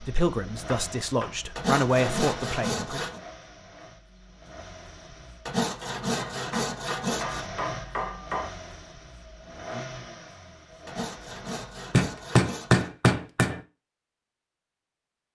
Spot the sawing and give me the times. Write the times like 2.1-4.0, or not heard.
1.6-3.2, 5.5-7.5, 10.8-12.9.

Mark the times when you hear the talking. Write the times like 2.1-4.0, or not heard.
0.0-3.0.